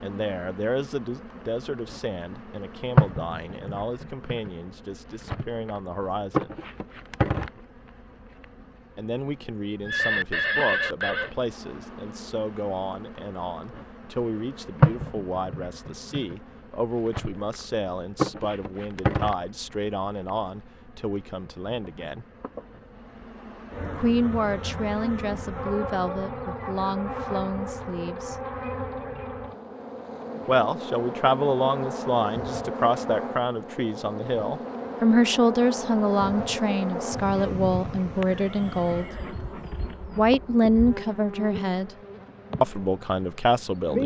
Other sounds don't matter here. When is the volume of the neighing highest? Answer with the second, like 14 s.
11 s.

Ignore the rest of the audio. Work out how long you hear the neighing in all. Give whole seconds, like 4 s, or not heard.
3 s.